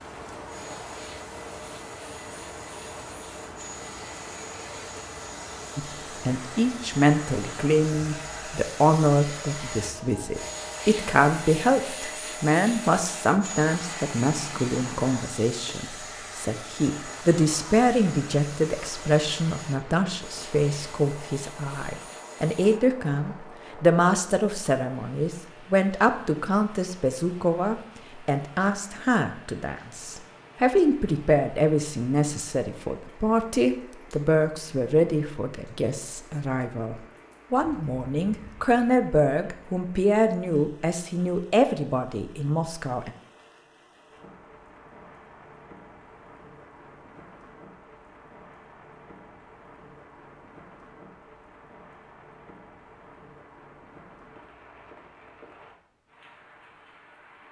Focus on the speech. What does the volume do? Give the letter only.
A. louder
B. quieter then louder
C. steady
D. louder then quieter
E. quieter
C.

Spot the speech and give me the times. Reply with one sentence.
The speech can be heard from 5.8 to 43.1 s.